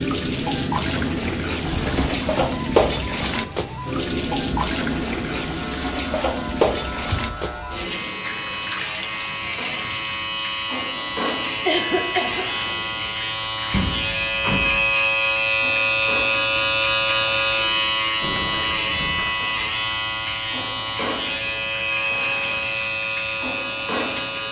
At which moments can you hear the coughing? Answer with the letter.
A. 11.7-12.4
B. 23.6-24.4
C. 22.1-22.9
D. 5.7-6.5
A.